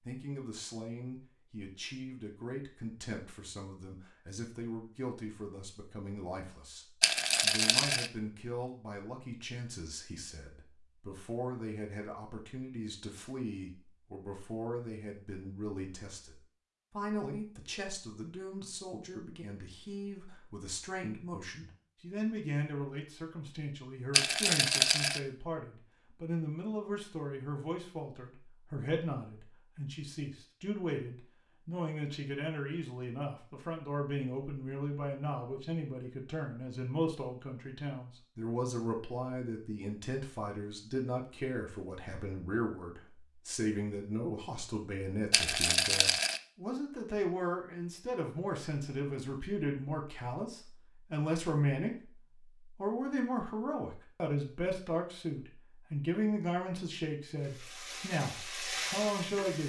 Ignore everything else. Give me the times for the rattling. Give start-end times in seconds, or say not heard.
7.0-8.1, 24.1-25.2, 45.3-46.4.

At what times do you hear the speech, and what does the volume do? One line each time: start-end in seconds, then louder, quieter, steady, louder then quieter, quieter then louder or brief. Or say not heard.
0.1-59.6 louder.